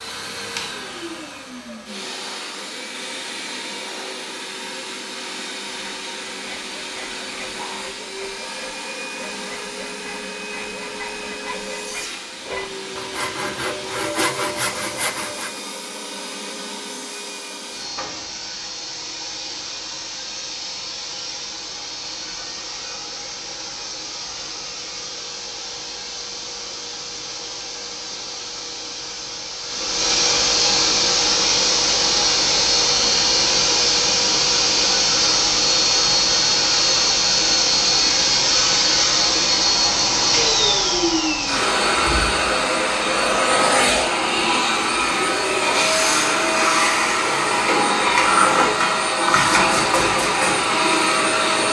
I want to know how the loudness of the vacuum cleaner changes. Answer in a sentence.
The volume of the vacuum cleaner goes up.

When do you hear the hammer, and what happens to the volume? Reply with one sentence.
You can't hear the hammer here.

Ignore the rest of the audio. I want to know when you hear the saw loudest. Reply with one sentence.
The loudest moment of the saw is at 14 seconds.